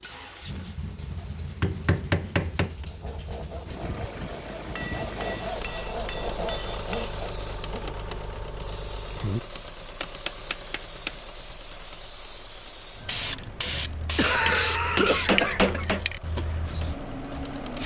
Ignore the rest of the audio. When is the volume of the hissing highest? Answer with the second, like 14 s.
15 s.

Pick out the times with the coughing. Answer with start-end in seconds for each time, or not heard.
13.4-15.8.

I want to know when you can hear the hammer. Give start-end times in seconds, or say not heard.
1.6-2.9, 4.8-7.2, 10.0-11.2, 14.4-16.1.